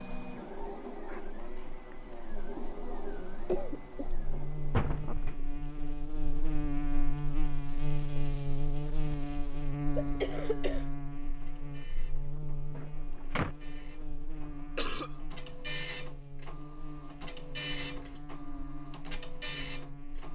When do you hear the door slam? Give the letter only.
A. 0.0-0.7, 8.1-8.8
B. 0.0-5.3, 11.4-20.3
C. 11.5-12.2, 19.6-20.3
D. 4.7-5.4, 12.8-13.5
D.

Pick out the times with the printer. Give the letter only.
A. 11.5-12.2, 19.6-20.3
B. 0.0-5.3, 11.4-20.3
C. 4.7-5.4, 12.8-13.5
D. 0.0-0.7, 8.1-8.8
B.